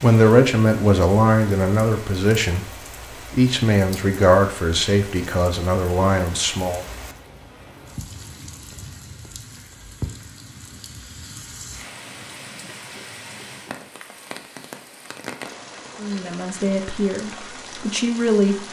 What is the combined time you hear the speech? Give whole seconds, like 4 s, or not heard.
9 s.